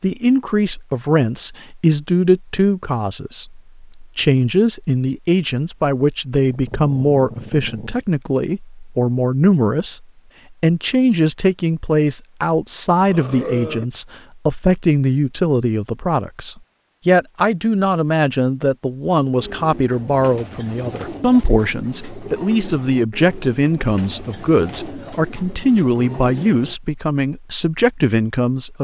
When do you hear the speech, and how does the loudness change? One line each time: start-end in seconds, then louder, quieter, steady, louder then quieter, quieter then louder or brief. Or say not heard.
0.0-28.7 steady.